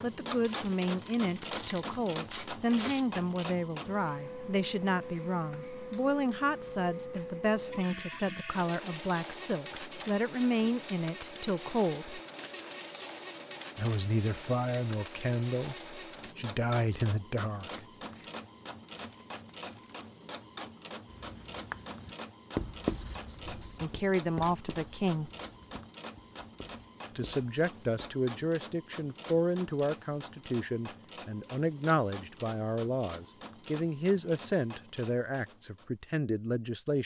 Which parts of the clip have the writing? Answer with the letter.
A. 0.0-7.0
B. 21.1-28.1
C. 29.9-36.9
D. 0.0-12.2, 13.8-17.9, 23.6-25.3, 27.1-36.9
B.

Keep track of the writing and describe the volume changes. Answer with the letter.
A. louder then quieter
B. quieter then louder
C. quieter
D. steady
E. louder
C.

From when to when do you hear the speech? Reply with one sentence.
The speech can be heard from 0.0 to 12.2 s, from 13.8 to 17.9 s, from 23.6 to 25.3 s and from 27.1 to 36.9 s.